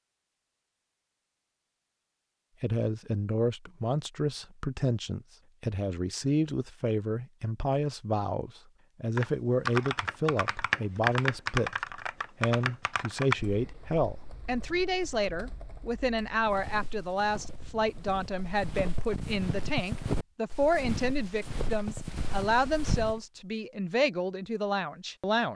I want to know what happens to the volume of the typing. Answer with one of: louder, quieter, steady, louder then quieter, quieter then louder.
quieter.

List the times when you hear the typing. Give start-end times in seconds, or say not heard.
9.2-19.1.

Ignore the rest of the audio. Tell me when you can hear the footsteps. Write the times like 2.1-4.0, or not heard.
16.4-23.2.